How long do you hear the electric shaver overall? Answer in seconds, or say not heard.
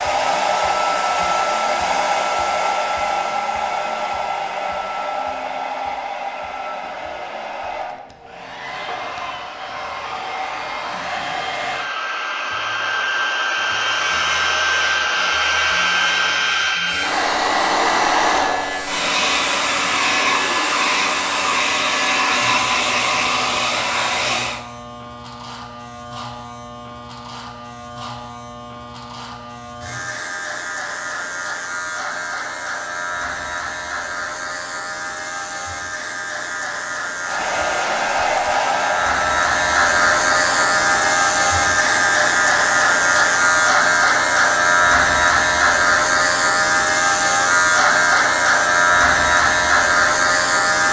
37 s.